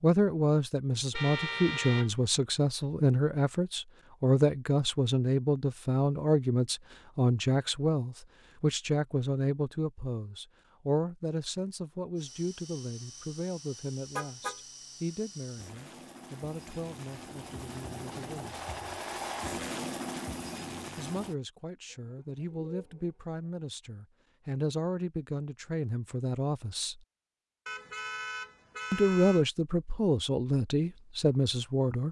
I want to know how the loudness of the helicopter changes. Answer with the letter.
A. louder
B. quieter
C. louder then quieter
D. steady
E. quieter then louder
A.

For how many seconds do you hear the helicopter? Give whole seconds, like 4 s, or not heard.
9 s.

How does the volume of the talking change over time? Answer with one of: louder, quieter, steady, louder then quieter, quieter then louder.
quieter then louder.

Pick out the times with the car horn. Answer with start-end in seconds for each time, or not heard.
1.1-2.2, 14.2-14.6, 27.6-29.4.